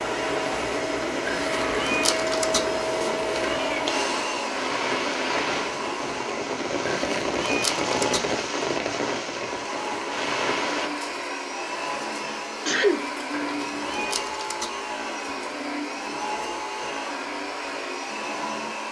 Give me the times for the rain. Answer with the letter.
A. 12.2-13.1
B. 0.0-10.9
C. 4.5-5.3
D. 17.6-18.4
B.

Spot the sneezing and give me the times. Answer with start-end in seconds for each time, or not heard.
12.2-13.1.